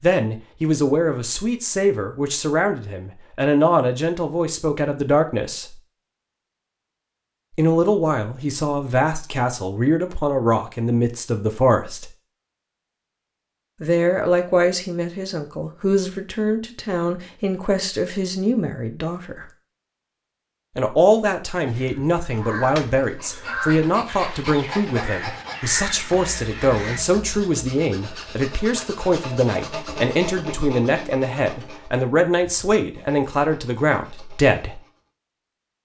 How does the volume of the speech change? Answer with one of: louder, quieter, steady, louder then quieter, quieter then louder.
steady.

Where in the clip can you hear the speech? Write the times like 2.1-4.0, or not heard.
0.0-5.8, 7.5-12.1, 13.8-19.5, 20.8-34.8.